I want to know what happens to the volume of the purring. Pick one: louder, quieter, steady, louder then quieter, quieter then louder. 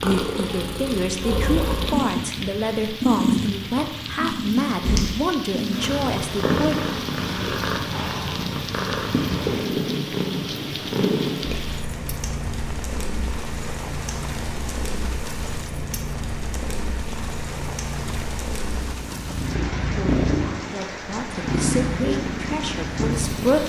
quieter then louder.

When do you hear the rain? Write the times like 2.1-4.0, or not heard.
0.0-23.6.